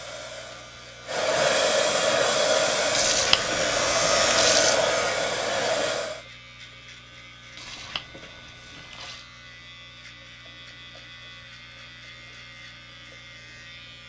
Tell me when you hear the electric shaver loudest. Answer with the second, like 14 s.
4 s.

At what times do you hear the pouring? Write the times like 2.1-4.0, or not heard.
2.9-4.8, 7.5-9.2.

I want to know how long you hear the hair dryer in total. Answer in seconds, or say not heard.
6 s.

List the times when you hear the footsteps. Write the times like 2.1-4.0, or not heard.
not heard.